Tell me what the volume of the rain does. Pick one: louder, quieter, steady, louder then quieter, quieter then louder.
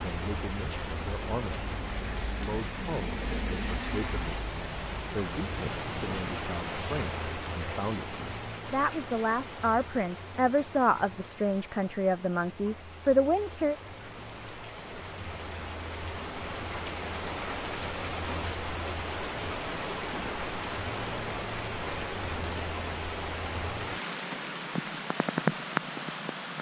quieter then louder.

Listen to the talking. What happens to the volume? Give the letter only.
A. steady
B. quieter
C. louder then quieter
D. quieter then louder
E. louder
E.